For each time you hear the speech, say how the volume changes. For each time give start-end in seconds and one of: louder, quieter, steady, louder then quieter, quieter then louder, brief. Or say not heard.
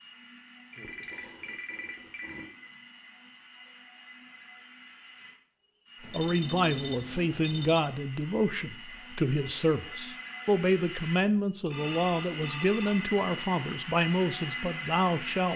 6.1-15.5 steady.